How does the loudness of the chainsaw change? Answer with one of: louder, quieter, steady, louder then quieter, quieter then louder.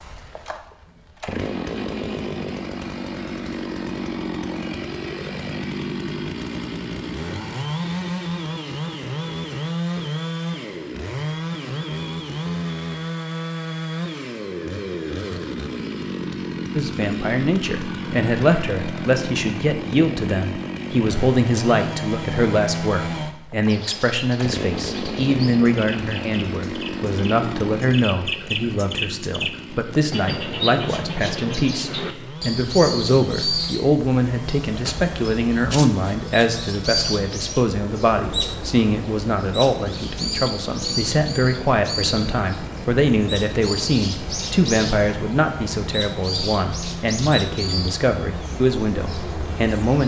quieter.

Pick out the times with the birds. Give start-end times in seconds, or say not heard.
23.6-50.0.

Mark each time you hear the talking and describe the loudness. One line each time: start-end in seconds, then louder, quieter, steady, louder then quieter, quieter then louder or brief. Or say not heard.
16.8-50.0 steady.